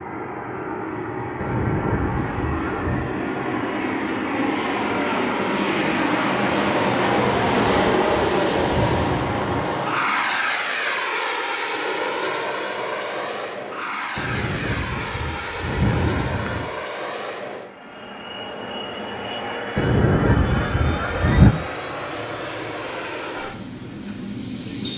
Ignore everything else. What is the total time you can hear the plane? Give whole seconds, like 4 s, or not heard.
25 s.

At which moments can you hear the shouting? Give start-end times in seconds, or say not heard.
not heard.